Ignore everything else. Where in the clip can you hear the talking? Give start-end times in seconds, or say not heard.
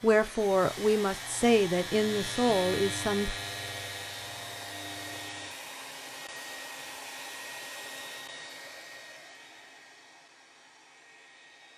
0.0-3.4.